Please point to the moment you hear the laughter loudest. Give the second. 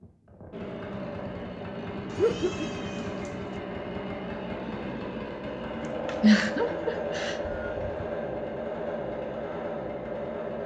6 s.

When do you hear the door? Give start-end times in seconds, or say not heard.
not heard.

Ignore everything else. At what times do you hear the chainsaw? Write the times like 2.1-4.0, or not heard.
0.0-10.6.